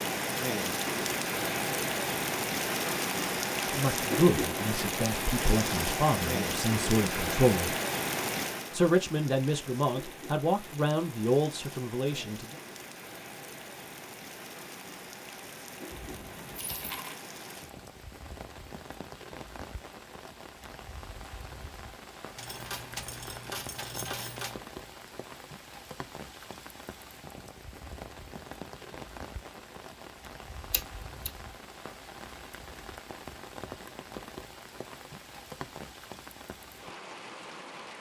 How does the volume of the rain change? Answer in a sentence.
The loudness of the rain goes down.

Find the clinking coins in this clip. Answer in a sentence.
You can hear the clinking coins from 15.9 to 17.2 s and from 22.4 to 24.6 s.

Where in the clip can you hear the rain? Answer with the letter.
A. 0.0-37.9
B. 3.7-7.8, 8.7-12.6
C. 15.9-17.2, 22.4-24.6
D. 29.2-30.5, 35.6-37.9
A.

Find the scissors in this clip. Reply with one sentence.
The scissors can be heard from 30.7 to 31.3 s.